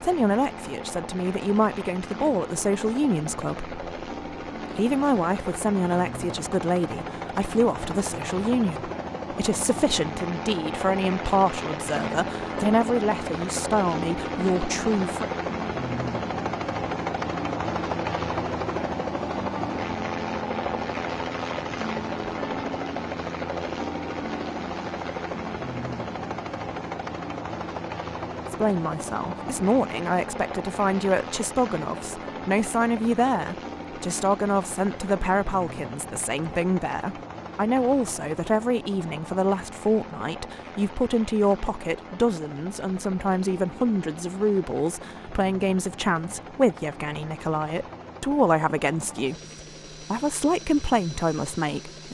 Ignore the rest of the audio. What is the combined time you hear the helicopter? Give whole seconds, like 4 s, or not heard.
52 s.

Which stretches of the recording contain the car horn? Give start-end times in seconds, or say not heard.
not heard.